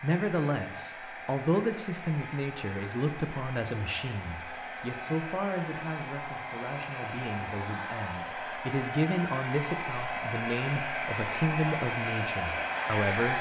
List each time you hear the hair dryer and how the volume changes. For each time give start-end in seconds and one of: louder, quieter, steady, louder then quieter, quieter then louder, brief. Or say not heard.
0.0-13.3 louder.